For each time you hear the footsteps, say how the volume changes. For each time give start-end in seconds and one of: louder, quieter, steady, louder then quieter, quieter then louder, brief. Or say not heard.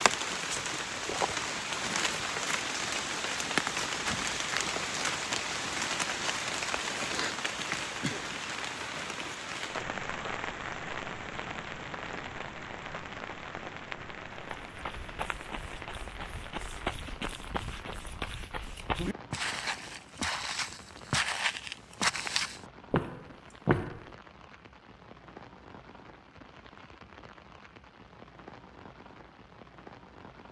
14.4-24.1 louder.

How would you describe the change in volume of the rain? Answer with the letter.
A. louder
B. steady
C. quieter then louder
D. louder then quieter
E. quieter
E.